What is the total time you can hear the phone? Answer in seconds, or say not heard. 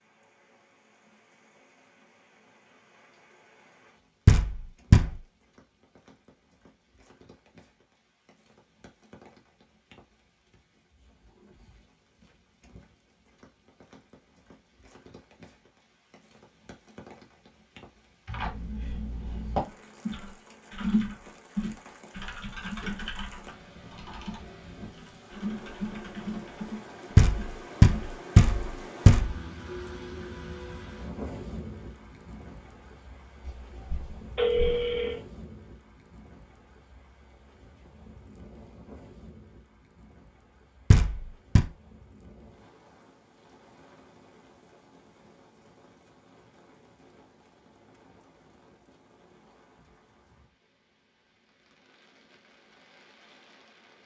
2 s.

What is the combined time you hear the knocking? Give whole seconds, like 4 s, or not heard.
4 s.